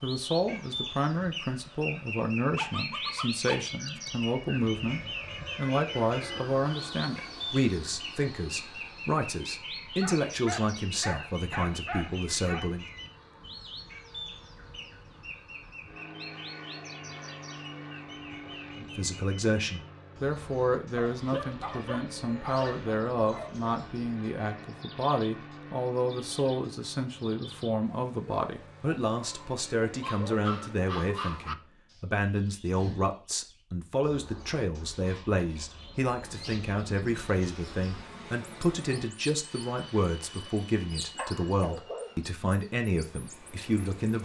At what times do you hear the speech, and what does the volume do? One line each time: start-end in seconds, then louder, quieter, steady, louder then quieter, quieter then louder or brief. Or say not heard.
0.0-12.8 steady
18.8-44.2 steady.